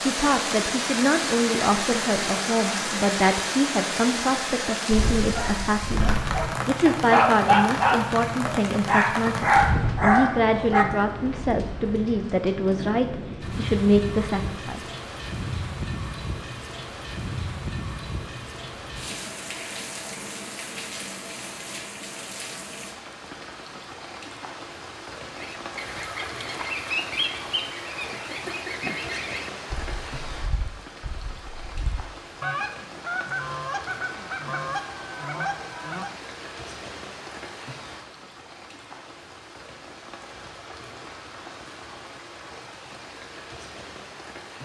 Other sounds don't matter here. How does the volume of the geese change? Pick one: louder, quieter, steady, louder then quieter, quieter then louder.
quieter then louder.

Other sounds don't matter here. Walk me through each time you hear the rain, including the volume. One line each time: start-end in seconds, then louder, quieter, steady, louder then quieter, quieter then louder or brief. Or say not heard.
0.0-44.6 quieter.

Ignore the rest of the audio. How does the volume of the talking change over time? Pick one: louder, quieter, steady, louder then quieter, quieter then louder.
steady.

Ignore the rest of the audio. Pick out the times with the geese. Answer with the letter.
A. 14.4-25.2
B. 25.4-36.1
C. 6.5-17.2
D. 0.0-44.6
B.